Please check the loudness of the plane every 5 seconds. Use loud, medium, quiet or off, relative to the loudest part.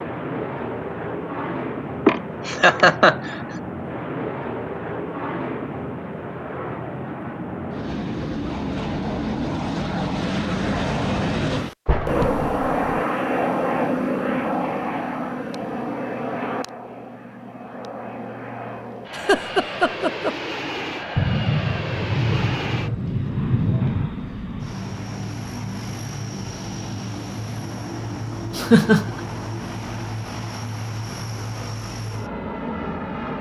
medium, medium, loud, medium, medium, medium, medium.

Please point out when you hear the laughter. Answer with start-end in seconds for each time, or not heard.
2.0-3.5, 19.1-20.4, 28.6-29.1.